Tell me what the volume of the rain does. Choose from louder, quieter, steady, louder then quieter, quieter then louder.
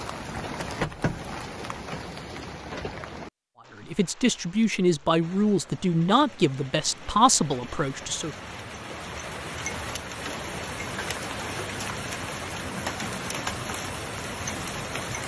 quieter then louder.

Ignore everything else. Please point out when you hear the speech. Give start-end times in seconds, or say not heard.
3.8-8.3.